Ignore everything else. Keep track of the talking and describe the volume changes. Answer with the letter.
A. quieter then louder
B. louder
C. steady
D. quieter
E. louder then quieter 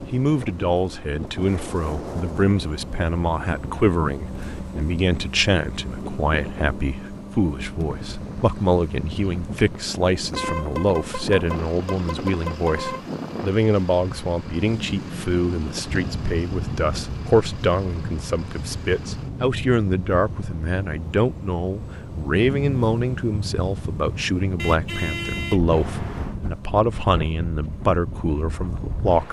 C.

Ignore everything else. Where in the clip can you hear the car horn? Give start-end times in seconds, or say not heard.
10.3-13.1, 24.6-26.4.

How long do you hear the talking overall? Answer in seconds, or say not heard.
29 s.